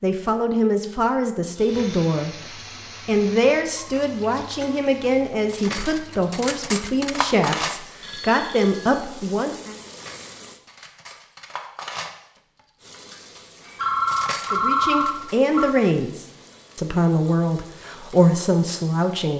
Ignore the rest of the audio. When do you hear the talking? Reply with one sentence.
The talking can be heard from 0.0 to 9.8 s and from 14.5 to 19.3 s.